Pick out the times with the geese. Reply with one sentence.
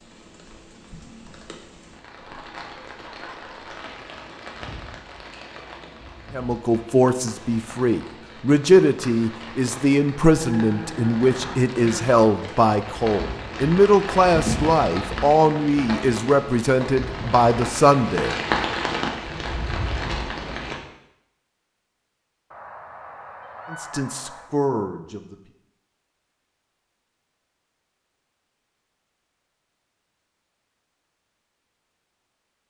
You can hear the geese from 2.1 to 3.7 s and from 22.5 to 24.6 s.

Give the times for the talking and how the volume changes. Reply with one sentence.
The talking can be heard from 6.3 to 18.4 s, at a steady volume; and briefly from 23.7 to 25.4 s.